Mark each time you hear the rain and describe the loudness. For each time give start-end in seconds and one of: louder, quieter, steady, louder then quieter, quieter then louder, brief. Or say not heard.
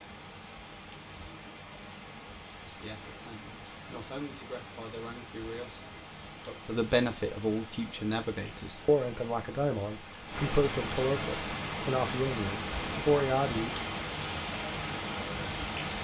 0.0-15.9 louder.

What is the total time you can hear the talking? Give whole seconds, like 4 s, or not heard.
11 s.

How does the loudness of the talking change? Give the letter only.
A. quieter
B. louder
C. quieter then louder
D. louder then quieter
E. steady
B.